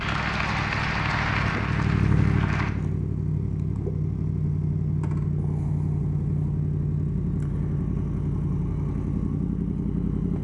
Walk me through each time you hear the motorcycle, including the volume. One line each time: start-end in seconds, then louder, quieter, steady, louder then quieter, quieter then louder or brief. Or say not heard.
0.0-10.3 steady.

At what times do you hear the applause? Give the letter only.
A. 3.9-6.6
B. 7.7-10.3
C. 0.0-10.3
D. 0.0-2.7
D.